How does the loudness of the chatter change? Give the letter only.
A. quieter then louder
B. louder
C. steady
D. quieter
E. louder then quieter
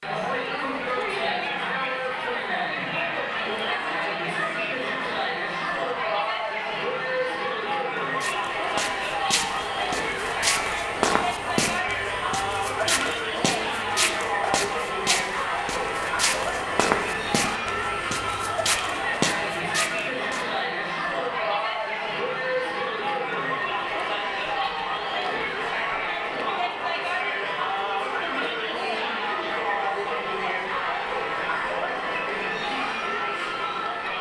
C.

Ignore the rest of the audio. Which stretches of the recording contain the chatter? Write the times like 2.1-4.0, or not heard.
0.0-34.1.